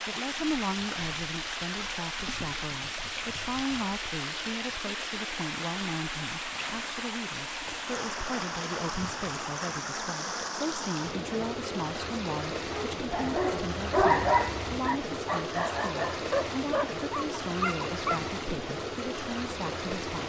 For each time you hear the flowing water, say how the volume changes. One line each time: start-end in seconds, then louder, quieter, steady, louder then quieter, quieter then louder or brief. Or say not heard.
0.0-20.2 steady.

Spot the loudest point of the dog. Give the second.
14 s.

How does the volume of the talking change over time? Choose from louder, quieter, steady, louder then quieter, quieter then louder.
steady.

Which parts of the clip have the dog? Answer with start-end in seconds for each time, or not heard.
12.9-18.3.